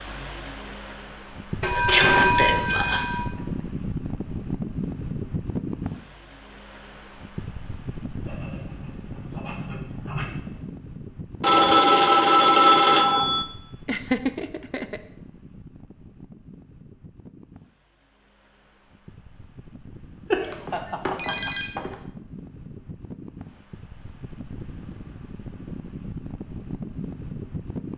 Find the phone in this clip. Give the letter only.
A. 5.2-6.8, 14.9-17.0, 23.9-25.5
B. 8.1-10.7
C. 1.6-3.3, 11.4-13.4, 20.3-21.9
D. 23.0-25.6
C.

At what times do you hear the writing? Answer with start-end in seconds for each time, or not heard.
8.1-10.7.